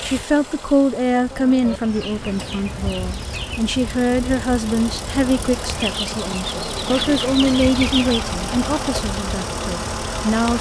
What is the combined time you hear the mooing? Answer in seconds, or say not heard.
not heard.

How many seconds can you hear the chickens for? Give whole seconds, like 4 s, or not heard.
5 s.